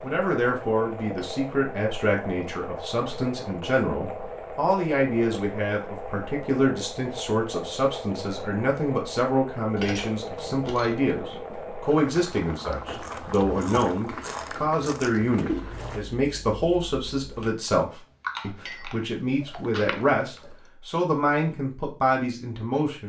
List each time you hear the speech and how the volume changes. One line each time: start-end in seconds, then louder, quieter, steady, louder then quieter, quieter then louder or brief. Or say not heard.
0.0-23.0 steady.